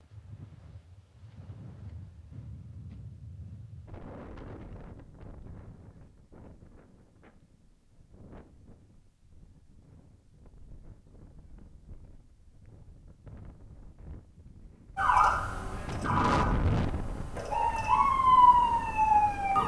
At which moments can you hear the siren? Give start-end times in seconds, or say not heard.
14.9-19.6.